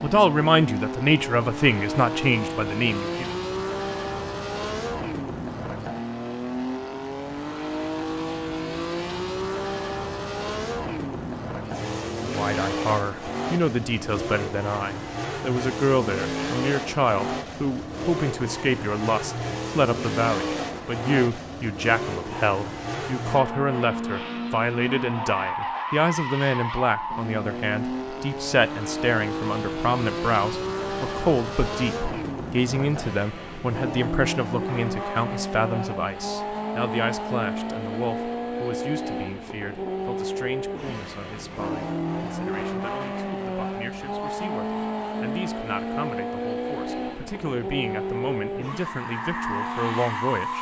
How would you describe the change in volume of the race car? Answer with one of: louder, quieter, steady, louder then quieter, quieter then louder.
steady.